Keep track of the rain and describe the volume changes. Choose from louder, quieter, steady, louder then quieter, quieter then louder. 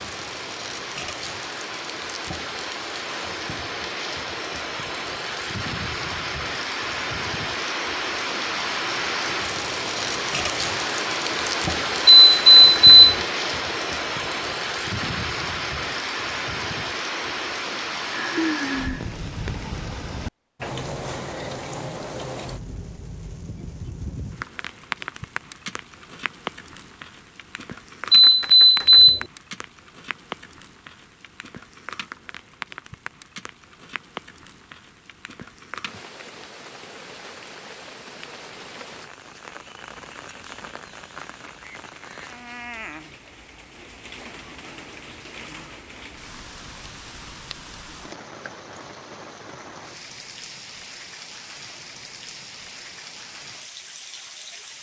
quieter.